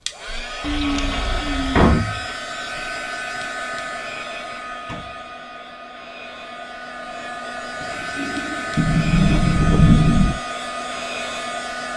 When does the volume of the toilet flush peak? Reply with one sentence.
The volume of the toilet flush peaks at 1 second.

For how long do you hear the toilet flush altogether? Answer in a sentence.
The toilet flush can be heard for 2 seconds in total.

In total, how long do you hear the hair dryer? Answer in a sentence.
You can hear the hair dryer for 12 seconds altogether.